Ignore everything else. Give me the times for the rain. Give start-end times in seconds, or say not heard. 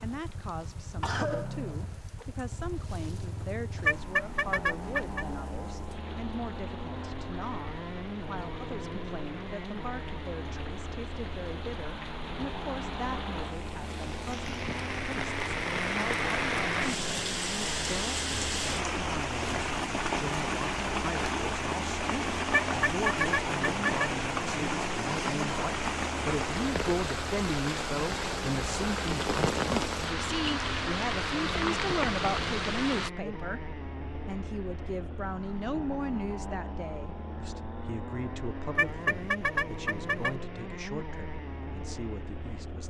0.0-33.1.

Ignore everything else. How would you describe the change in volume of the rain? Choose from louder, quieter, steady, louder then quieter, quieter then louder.
louder.